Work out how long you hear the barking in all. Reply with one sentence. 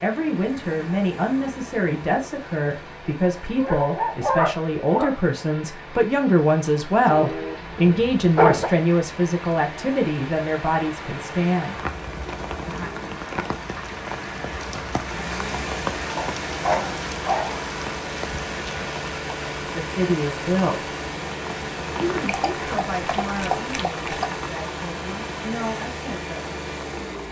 You can hear the barking for 7 seconds altogether.